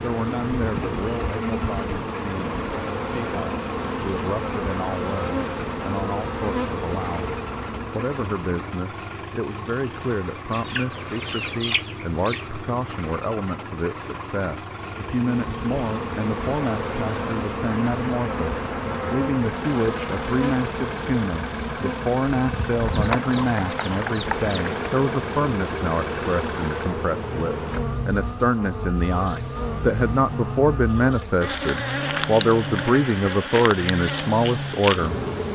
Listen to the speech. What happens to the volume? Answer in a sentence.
The volume of the speech goes up.